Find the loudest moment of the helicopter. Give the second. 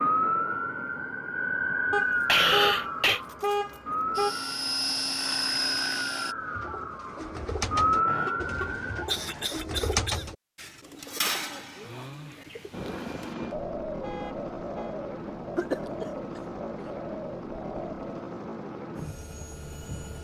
5 s.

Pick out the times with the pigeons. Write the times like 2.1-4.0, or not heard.
6.3-18.2.